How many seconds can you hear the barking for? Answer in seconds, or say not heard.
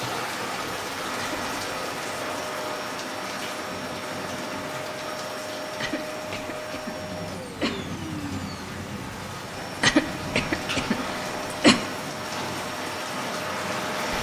not heard.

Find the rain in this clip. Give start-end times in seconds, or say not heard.
0.0-14.1.